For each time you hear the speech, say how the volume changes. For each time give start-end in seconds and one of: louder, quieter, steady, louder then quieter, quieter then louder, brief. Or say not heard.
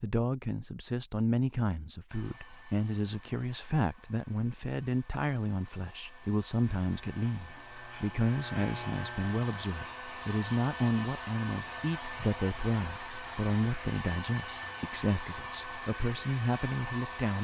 0.0-17.4 steady.